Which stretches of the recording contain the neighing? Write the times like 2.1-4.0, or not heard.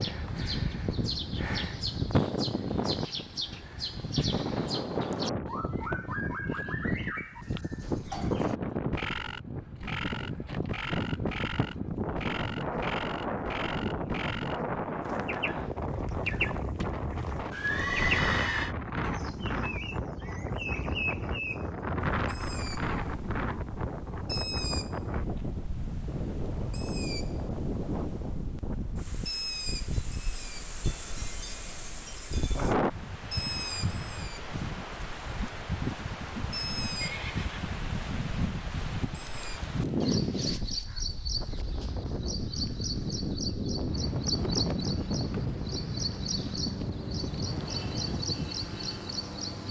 17.5-18.8, 37.0-37.6.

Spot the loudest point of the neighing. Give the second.
18 s.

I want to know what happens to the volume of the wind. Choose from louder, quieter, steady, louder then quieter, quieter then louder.
steady.